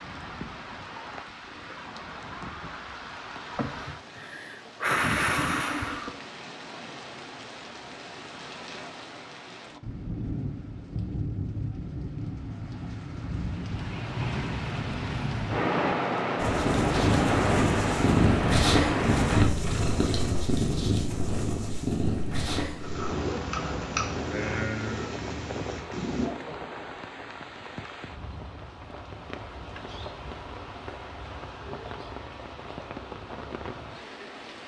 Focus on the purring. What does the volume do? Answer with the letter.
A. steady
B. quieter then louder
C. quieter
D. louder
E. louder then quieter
C.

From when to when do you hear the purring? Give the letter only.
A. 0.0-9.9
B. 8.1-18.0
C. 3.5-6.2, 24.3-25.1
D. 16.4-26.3
D.